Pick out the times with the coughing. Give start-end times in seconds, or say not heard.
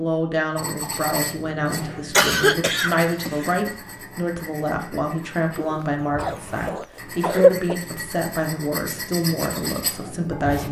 2.1-3.7, 5.5-7.8.